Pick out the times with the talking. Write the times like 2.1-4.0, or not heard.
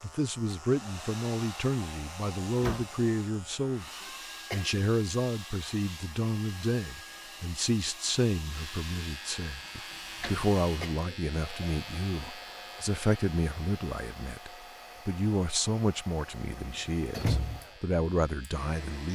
0.0-3.9, 4.5-19.1.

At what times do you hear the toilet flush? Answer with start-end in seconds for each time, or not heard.
not heard.